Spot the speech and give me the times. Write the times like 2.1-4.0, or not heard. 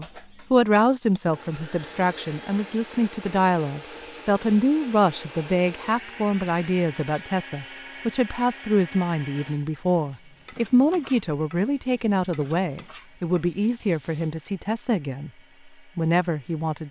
0.0-15.3, 15.9-16.8.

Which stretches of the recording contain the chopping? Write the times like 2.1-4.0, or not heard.
not heard.